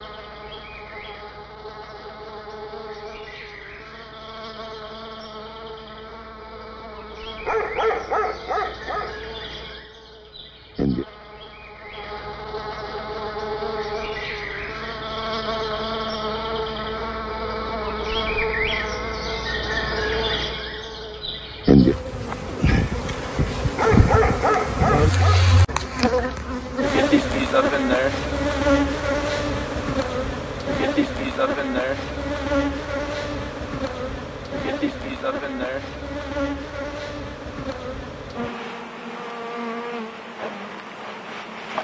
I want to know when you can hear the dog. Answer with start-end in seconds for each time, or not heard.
7.5-9.2, 23.8-25.5.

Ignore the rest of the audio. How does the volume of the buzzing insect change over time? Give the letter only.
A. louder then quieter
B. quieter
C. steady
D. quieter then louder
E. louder
A.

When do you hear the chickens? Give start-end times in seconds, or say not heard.
not heard.